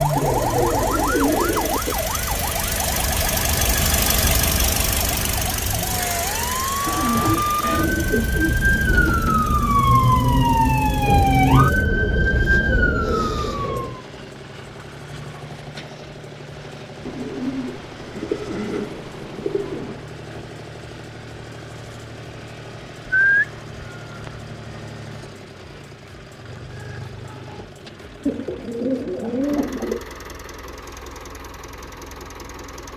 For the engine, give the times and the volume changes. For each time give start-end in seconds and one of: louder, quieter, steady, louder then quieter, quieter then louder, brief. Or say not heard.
0.0-32.9 quieter.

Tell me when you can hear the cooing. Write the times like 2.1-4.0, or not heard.
0.1-2.0, 6.8-9.3, 11.1-13.9, 17.1-20.0, 23.1-24.4, 28.2-30.1.